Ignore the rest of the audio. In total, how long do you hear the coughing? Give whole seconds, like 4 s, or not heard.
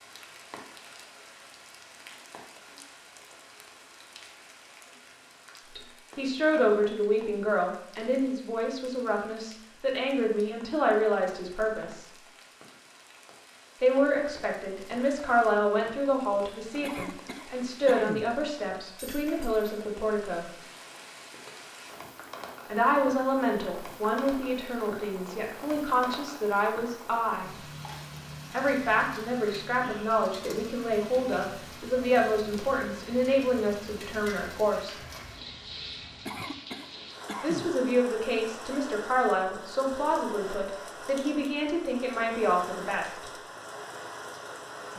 3 s.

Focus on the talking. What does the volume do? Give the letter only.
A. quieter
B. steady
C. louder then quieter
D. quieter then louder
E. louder
B.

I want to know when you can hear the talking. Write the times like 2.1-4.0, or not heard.
5.8-12.1, 13.8-20.4, 22.6-27.6, 28.5-35.0, 37.4-43.2.